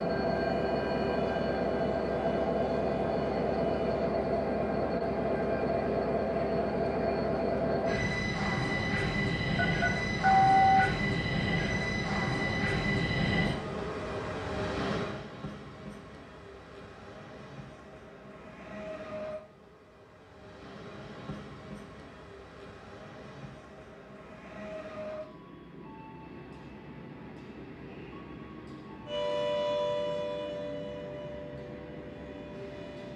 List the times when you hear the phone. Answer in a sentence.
The phone can be heard from 9.6 to 10.8 s.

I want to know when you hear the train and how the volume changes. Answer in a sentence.
You can hear the train from 0.0 to 33.1 s, getting quieter.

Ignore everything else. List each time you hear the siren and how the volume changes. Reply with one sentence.
You can hear the siren from 0.1 to 4.2 s, at a steady volume; and from 29.1 to 33.1 s, getting quieter.